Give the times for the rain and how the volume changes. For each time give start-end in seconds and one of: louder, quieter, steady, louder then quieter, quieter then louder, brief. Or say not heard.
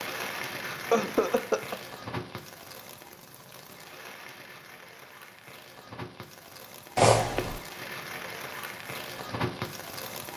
0.0-10.3 quieter then louder.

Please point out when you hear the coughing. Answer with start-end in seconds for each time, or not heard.
0.7-1.8, 7.0-7.6.